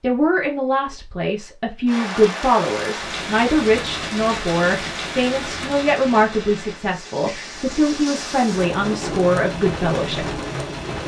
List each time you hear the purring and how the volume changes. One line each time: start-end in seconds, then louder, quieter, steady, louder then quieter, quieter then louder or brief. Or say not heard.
not heard.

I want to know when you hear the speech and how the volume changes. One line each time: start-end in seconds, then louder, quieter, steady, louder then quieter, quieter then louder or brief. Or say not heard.
0.0-10.3 steady.